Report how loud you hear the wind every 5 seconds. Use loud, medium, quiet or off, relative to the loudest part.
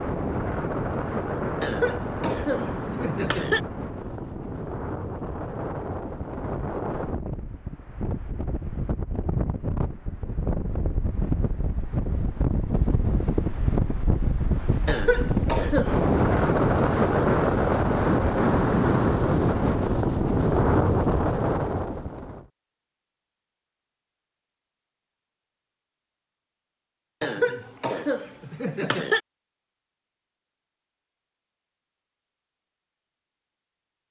medium, medium, medium, loud, loud, off, off.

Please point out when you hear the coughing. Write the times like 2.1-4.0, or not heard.
1.6-3.6, 14.8-16.0, 27.2-29.2.